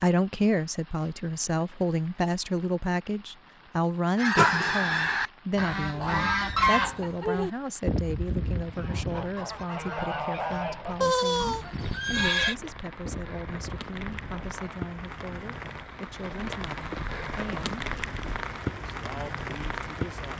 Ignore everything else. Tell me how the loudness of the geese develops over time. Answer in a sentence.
The volume of the geese goes down.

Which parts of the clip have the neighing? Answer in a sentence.
The neighing can be heard from 4.3 to 5.2 s and from 11.0 to 12.6 s.